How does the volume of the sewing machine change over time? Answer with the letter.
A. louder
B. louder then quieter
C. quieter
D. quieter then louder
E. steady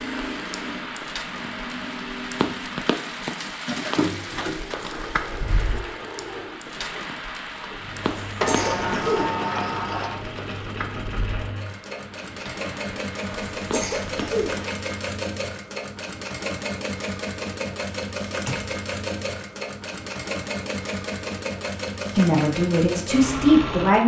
A.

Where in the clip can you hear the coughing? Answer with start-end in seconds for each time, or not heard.
8.0-9.3, 13.2-14.6.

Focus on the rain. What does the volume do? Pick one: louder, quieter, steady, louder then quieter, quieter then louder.
quieter.